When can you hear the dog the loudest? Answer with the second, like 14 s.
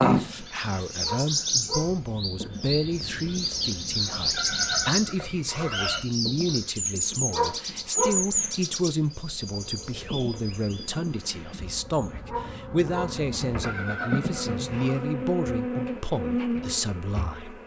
8 s.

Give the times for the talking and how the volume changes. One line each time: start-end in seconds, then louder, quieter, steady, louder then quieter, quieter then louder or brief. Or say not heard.
0.0-17.6 steady.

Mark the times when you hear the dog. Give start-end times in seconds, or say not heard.
1.0-1.9, 7.3-8.2, 12.2-13.2.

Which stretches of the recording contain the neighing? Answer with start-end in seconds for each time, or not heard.
4.3-6.0, 13.6-15.1.